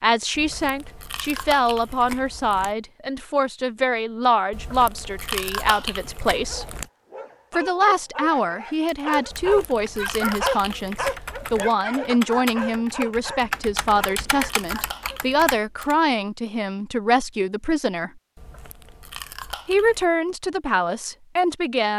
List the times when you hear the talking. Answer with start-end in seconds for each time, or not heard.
0.0-6.7, 7.5-18.1, 19.6-21.9.